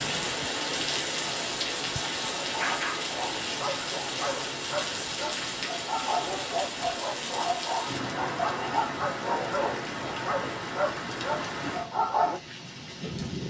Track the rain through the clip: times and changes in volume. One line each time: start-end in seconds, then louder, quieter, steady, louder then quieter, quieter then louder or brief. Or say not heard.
0.0-13.4 quieter.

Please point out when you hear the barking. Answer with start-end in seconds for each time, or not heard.
1.8-12.4.